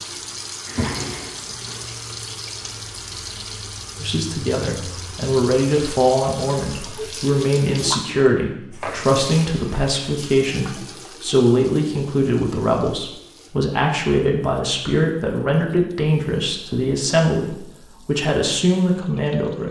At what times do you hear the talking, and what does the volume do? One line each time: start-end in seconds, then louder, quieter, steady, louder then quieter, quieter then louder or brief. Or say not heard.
4.0-19.6 steady.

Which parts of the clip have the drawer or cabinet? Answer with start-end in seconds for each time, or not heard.
0.7-1.9.